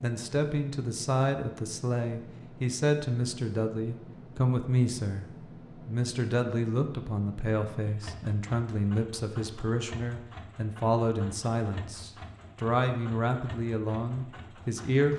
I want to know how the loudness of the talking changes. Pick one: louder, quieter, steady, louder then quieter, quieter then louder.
steady.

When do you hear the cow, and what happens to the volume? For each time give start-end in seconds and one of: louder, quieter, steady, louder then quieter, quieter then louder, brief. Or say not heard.
not heard.